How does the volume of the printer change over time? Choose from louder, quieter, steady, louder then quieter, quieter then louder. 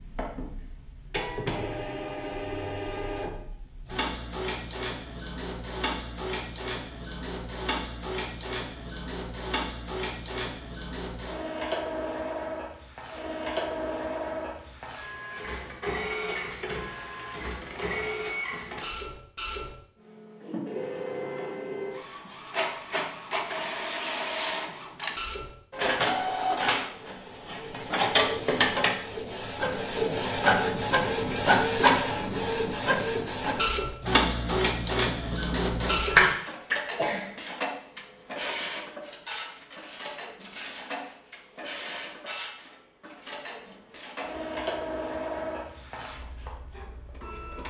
louder then quieter.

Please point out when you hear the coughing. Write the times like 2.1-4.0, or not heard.
36.0-37.3.